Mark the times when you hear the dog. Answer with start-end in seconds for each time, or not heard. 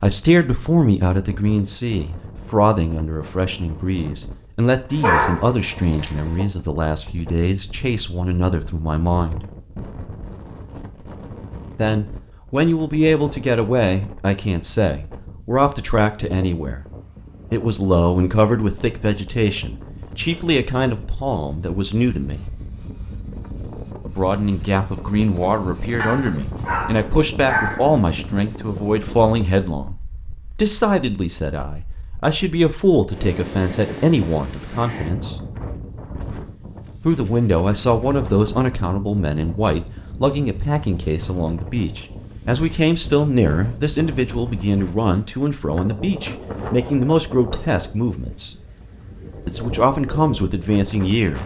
4.9-6.5, 25.9-27.9.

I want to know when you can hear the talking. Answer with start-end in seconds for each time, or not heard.
0.0-9.4, 11.8-16.9, 17.5-22.5, 24.1-35.4, 37.0-48.5, 49.5-51.4.